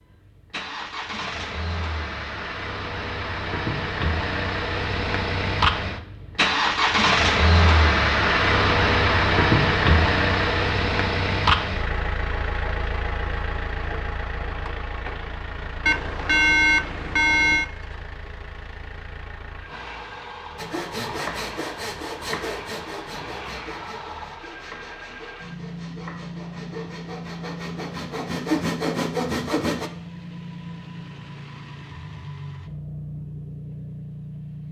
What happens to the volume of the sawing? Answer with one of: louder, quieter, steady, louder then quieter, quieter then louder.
quieter then louder.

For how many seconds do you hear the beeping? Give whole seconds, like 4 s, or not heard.
2 s.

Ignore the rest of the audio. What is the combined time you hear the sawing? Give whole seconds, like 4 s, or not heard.
9 s.